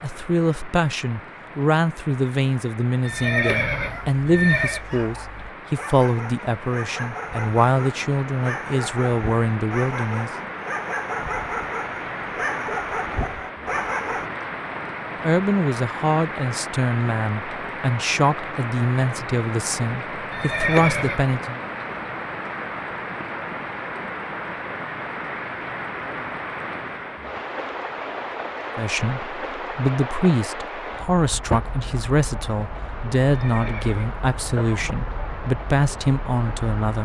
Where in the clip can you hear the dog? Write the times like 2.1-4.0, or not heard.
3.8-14.3.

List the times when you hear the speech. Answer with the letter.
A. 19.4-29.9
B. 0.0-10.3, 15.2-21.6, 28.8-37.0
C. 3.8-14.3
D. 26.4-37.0
B.